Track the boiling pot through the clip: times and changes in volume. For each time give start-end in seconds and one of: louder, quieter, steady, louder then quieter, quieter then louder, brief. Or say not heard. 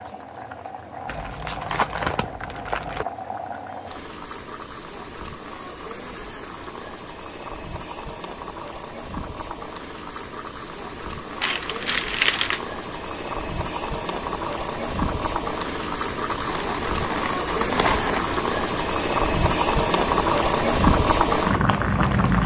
0.0-22.4 louder.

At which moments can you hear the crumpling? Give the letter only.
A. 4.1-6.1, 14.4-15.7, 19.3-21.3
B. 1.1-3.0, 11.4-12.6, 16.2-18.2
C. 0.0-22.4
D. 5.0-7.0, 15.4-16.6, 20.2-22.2
B.